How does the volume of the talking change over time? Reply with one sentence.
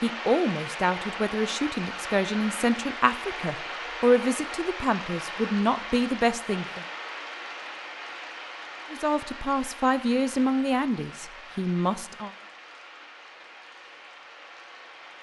The loudness of the talking stays about the same.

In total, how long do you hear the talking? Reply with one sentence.
You can hear the talking for 10 seconds altogether.